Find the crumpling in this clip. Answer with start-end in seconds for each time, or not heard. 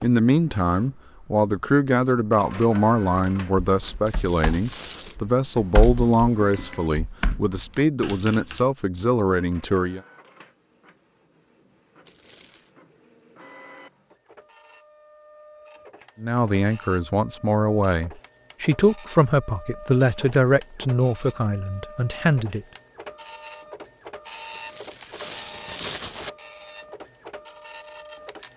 4.0-5.2, 12.1-12.7, 24.5-26.3.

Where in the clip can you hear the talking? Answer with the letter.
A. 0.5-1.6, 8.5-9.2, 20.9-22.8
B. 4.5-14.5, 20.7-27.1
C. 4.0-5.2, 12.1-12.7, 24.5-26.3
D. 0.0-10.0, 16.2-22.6
D.